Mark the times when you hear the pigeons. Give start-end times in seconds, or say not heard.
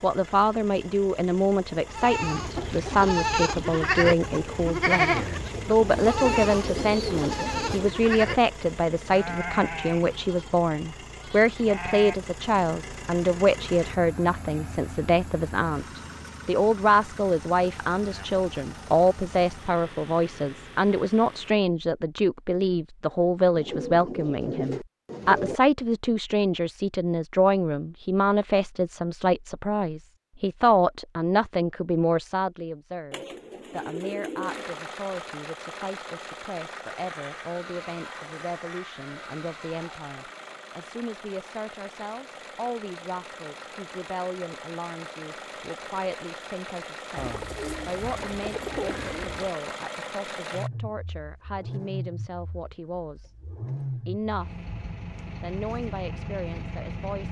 5.9-7.9, 23.6-25.6, 33.1-34.8, 47.1-49.5.